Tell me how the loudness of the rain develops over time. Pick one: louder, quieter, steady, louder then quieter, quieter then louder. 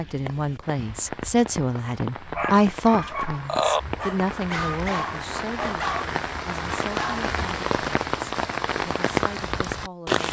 louder.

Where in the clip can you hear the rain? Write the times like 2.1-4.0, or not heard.
0.0-10.2.